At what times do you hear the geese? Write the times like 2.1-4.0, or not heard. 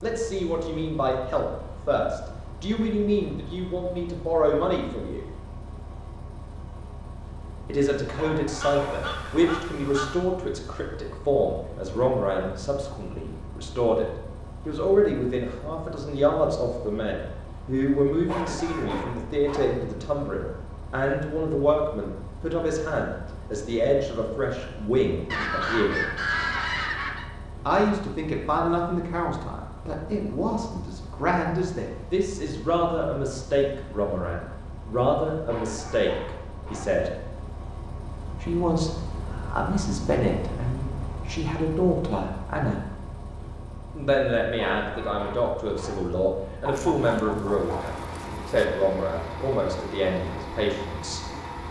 8.6-10.2, 25.3-27.2, 46.6-48.6.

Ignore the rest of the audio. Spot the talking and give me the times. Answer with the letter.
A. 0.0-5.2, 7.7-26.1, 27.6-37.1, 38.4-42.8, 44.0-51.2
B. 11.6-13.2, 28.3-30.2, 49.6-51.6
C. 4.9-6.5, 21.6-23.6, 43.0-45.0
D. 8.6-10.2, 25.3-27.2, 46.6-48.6
A.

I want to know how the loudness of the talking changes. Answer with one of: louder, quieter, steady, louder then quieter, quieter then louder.
steady.